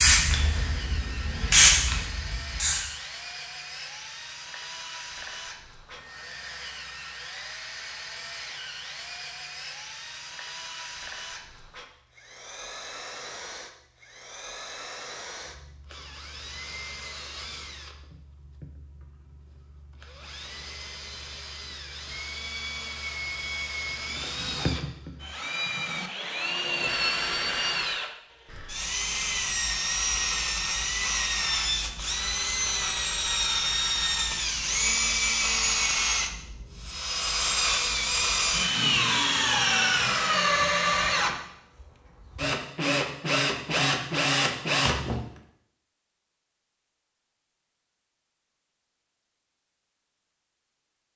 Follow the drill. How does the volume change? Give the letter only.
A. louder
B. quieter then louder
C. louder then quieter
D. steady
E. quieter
A.